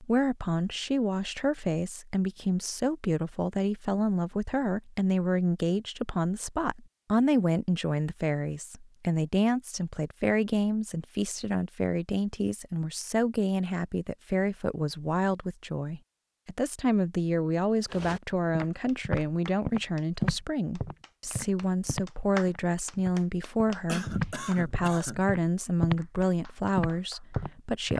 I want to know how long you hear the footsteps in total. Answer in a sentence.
You can hear the footsteps for 9 seconds altogether.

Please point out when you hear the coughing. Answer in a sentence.
The coughing can be heard from 23.9 to 25.2 s.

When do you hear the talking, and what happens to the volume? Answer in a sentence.
The talking can be heard from 0.0 to 27.9 s, at a steady volume.